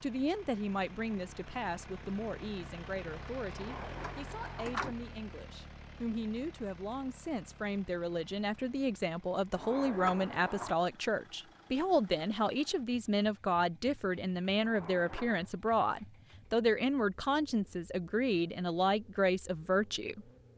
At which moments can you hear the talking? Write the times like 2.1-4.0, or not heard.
0.0-20.2.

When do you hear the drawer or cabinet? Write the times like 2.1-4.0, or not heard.
3.5-5.0, 9.5-10.8, 14.6-15.5.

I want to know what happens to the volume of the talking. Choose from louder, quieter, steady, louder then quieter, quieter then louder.
louder.